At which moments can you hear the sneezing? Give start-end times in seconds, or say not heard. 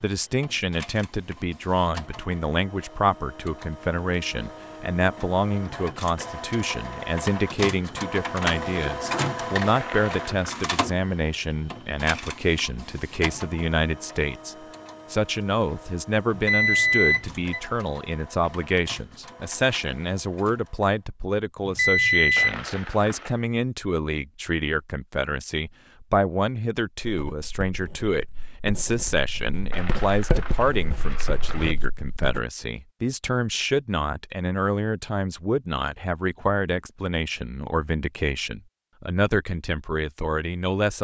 not heard.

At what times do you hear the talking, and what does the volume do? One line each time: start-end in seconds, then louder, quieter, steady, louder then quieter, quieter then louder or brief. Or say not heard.
0.0-40.9 steady.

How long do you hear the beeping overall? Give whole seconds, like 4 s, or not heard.
2 s.